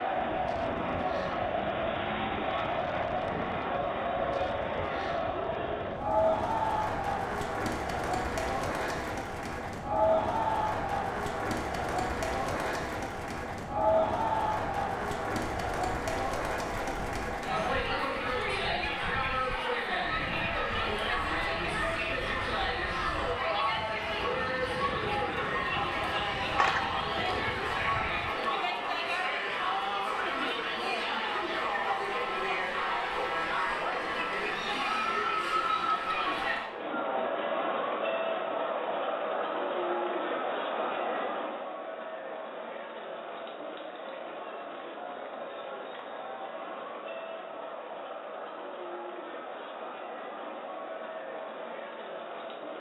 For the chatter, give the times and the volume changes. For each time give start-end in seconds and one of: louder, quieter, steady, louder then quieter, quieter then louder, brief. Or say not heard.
0.0-52.7 quieter.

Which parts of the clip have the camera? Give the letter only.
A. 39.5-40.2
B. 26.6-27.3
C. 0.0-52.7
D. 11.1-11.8
B.